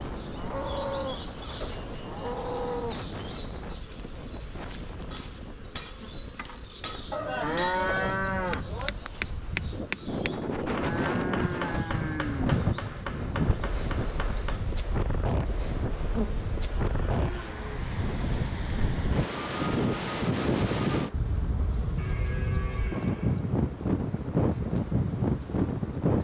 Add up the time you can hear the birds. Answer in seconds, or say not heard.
not heard.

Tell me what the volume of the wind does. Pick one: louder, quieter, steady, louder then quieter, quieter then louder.
louder.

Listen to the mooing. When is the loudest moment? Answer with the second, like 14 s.
8 s.